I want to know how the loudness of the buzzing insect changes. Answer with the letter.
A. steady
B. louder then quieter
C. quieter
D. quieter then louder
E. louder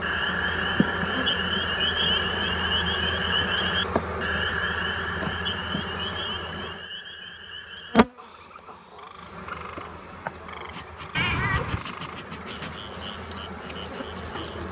C.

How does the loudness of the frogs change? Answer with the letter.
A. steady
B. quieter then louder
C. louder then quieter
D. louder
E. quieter
E.